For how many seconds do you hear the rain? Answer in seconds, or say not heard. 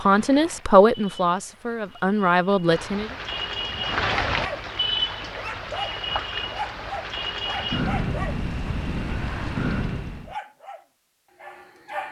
10 s.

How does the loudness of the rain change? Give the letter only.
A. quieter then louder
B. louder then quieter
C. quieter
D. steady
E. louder
E.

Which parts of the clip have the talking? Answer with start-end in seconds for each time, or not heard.
0.0-3.1.